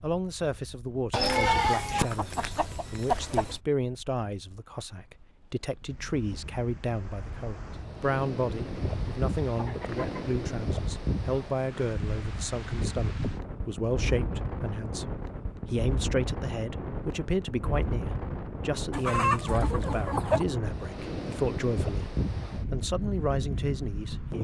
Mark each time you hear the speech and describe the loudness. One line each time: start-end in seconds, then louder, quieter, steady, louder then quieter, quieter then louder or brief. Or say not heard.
0.0-22.1 steady
22.7-24.3 brief.